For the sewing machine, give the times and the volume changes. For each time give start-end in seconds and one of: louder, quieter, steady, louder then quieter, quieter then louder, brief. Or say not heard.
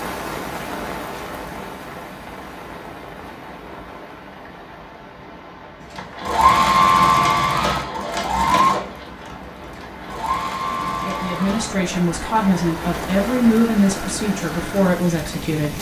6.0-15.7 quieter.